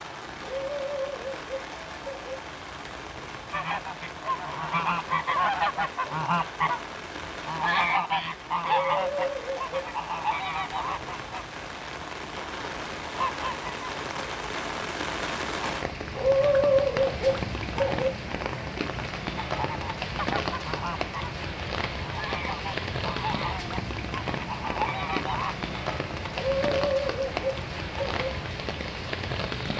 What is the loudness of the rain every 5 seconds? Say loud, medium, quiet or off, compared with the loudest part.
medium, medium, loud, loud, loud, loud.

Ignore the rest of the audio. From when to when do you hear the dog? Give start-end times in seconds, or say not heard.
0.4-2.4, 8.6-9.9, 16.1-18.1, 26.4-28.3.